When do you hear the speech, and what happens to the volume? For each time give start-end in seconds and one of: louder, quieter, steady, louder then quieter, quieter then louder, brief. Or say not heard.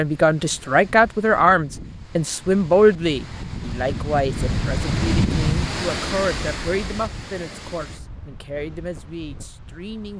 0.0-10.1 quieter.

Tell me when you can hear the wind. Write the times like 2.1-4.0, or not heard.
0.0-10.1.